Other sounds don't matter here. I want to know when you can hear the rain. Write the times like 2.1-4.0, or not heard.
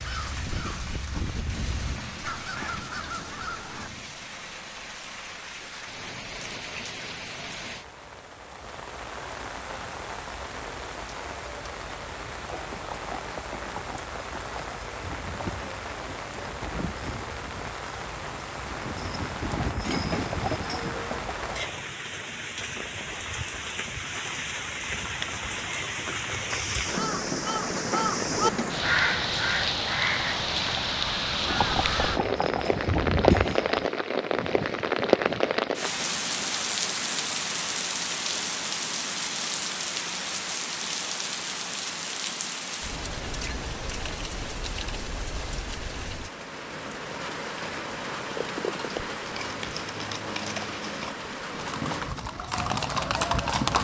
0.0-53.6.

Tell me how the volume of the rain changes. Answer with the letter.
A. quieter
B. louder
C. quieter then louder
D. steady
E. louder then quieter
E.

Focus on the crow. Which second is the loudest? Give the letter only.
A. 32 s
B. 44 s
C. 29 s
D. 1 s
C.